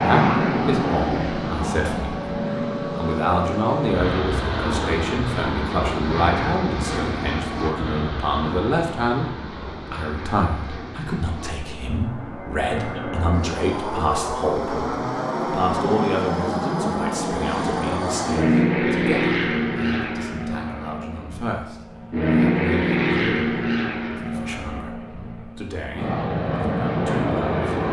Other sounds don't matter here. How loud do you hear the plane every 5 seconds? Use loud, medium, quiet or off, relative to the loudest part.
loud, medium, medium, loud, loud, loud.